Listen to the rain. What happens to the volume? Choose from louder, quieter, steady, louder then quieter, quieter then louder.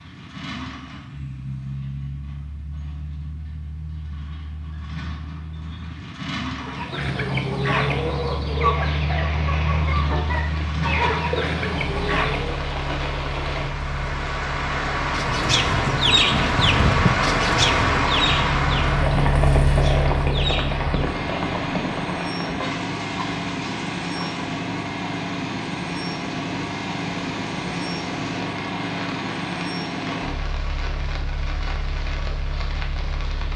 louder then quieter.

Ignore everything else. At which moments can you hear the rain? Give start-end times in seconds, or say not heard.
8.7-33.5.